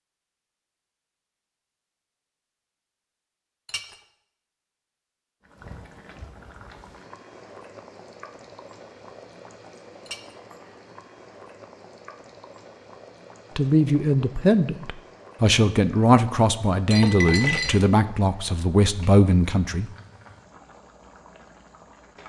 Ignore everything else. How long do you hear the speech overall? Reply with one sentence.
The speech can be heard for 6 seconds in total.